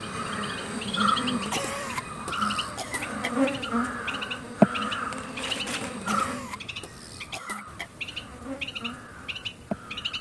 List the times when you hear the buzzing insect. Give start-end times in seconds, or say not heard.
0.0-10.1.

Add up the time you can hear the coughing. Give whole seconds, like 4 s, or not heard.
4 s.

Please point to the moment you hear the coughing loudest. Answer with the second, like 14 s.
2 s.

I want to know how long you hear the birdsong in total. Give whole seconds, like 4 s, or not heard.
10 s.